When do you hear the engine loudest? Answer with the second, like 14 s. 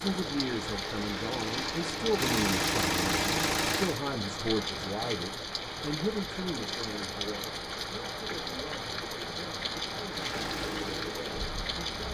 3 s.